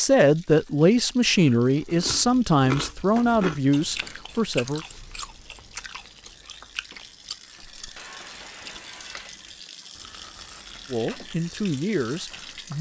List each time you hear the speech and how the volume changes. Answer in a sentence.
You can hear the speech from 0.0 to 4.8 s, at a steady volume; and briefly from 10.9 to 12.7 s.